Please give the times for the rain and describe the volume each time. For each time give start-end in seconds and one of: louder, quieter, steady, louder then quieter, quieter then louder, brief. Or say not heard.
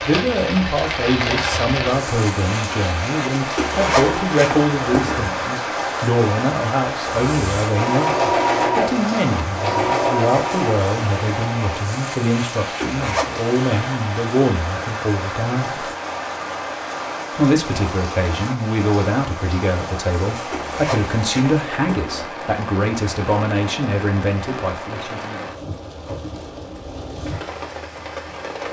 0.0-28.6 quieter.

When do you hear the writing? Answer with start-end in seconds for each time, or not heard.
not heard.